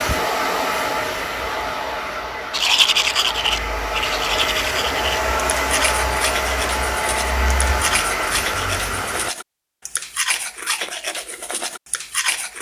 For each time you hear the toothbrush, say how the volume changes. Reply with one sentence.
The toothbrush can be heard from 2.5 to 12.5 s, getting quieter.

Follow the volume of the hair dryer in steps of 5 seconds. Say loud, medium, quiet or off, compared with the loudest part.
loud, loud, off.